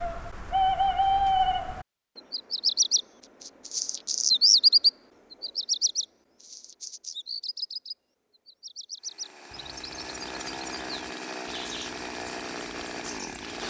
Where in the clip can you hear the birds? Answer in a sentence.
The birds can be heard from 0.0 to 13.6 s.